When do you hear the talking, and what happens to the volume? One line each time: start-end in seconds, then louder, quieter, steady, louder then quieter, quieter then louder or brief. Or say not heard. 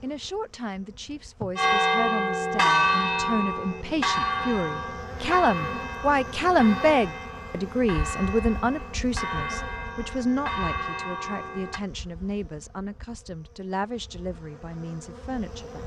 0.0-15.8 louder then quieter.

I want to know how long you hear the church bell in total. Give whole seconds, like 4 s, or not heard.
10 s.